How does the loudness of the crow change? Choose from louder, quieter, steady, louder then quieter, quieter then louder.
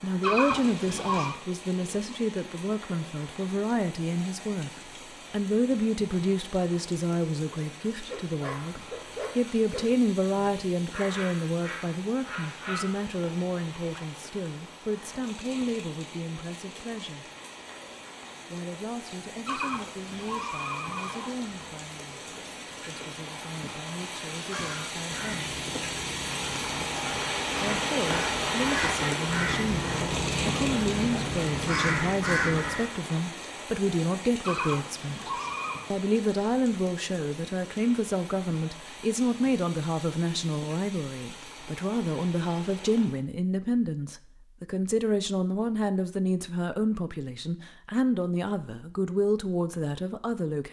louder.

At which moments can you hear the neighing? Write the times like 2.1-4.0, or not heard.
0.2-1.4, 19.4-21.4, 34.4-35.9.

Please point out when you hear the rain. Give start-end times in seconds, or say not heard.
0.0-43.2.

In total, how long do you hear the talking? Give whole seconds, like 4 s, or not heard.
46 s.